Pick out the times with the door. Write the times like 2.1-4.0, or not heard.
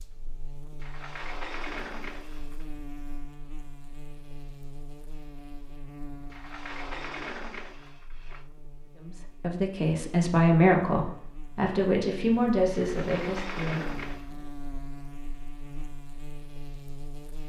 0.8-2.6, 6.3-8.4, 12.8-14.3.